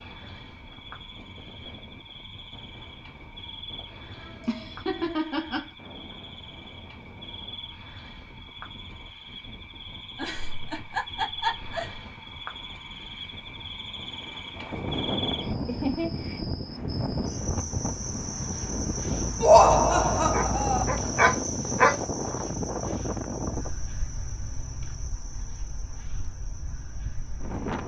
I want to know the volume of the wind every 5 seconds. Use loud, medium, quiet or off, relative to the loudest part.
quiet, quiet, medium, loud, loud, medium.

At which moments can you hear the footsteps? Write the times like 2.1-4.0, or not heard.
not heard.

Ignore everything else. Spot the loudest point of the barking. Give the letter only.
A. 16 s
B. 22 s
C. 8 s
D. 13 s
B.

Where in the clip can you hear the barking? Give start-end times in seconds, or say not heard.
20.3-22.0.